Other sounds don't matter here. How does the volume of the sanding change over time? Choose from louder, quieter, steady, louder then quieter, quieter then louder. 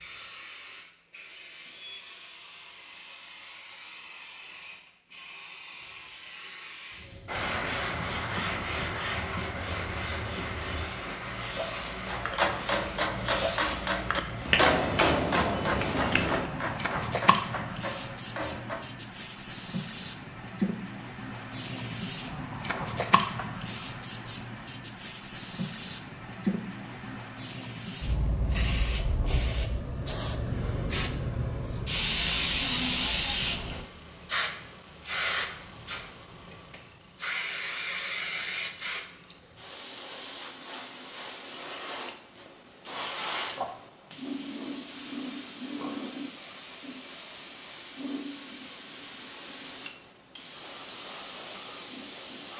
quieter.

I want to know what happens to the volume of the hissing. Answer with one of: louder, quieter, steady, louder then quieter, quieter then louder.
louder.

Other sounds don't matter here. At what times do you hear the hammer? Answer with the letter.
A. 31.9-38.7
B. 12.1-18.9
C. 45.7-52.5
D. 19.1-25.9
B.